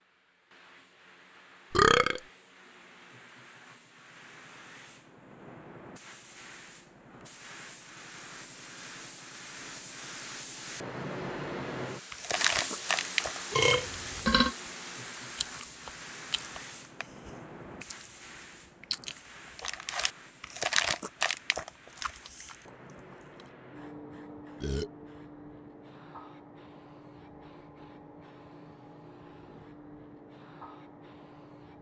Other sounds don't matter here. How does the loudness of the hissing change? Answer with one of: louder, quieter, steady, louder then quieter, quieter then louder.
louder then quieter.